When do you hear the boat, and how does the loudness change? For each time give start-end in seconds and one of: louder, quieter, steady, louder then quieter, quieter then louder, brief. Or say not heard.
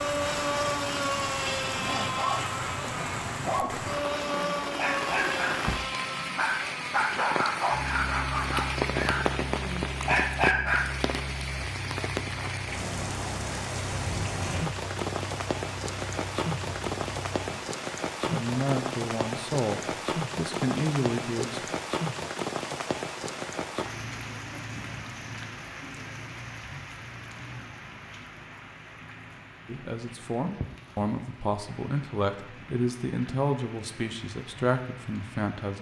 0.0-17.6 quieter.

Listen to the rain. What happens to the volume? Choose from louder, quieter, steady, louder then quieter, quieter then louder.
quieter.